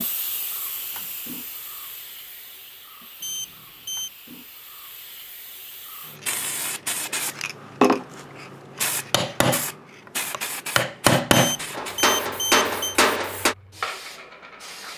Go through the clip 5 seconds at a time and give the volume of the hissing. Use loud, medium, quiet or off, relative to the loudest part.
quiet, loud, medium.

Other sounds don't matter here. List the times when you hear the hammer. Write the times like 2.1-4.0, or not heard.
8.8-9.7, 10.3-13.6.